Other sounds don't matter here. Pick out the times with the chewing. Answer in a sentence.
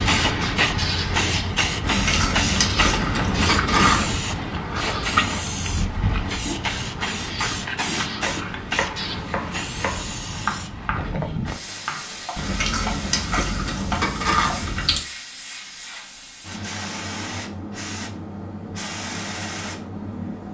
You can hear the chewing from 1.8 to 4.2 s and from 12.3 to 15.0 s.